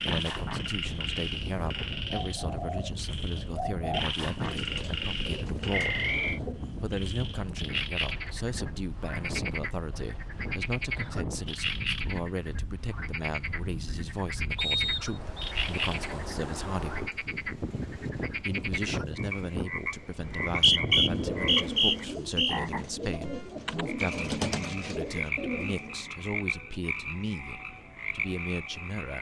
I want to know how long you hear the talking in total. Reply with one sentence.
The talking can be heard for 27 seconds in total.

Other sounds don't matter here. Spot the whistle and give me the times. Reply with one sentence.
You can hear the whistle from 5.7 to 6.4 s, from 14.6 to 15.6 s and from 20.2 to 22.6 s.